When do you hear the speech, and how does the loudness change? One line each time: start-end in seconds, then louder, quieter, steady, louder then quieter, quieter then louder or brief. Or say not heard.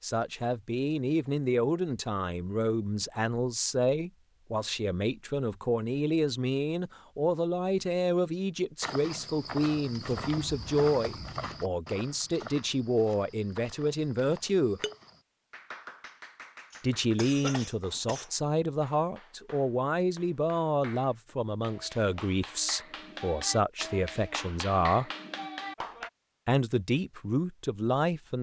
0.0-14.8 steady
16.8-25.1 steady
26.4-28.3 brief.